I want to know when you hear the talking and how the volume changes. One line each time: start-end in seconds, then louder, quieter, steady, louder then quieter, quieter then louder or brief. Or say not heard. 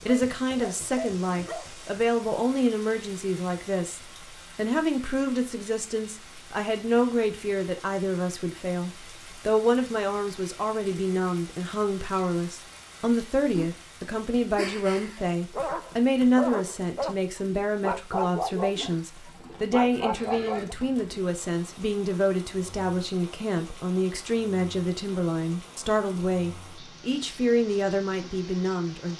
0.1-29.1 steady.